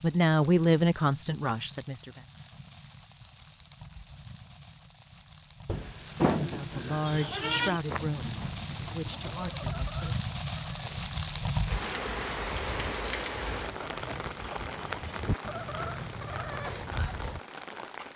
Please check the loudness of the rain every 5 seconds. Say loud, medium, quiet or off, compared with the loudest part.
quiet, medium, loud, medium.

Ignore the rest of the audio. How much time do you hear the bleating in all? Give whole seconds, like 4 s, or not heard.
2 s.